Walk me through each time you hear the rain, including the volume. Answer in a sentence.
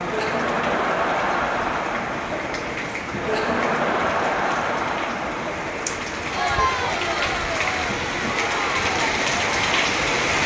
You can hear the rain from 0.0 to 10.4 s, getting louder.